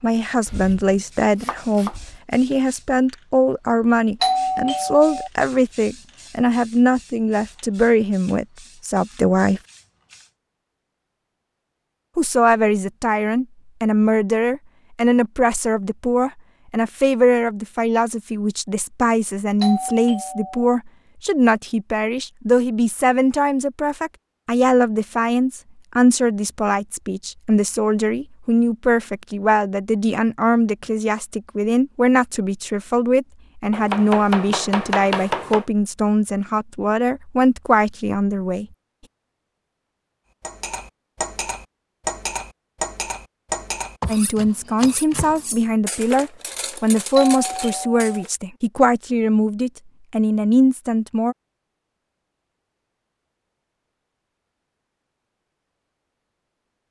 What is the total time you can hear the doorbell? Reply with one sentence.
The doorbell can be heard for 3 seconds in total.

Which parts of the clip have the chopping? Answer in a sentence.
The chopping can be heard from 0.5 to 2.2 s, from 33.7 to 35.6 s and from 44.0 to 45.5 s.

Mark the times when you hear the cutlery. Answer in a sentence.
You can hear the cutlery from 40.4 to 48.3 s.